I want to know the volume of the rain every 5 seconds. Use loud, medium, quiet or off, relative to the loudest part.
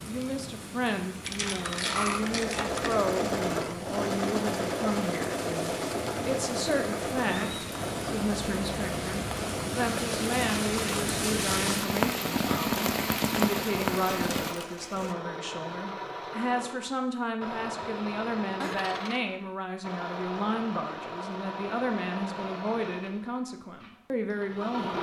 quiet, medium, loud, off, off.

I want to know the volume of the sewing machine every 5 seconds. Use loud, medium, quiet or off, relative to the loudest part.
loud, loud, medium, medium, medium.